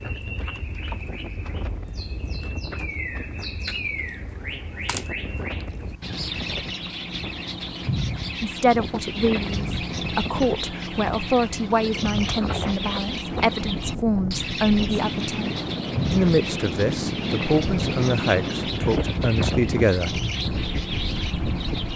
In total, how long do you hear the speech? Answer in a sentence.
The speech can be heard for 12 seconds in total.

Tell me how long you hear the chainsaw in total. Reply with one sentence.
The chainsaw can't be heard in this clip.